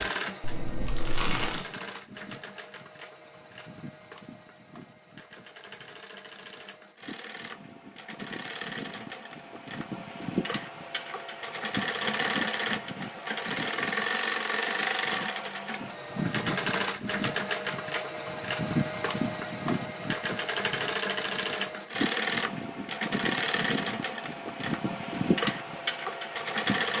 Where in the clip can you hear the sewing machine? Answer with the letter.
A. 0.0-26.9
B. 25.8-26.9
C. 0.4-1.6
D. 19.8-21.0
A.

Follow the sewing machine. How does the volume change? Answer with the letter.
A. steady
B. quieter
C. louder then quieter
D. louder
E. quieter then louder
D.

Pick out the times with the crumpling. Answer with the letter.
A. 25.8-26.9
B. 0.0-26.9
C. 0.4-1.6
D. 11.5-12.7
C.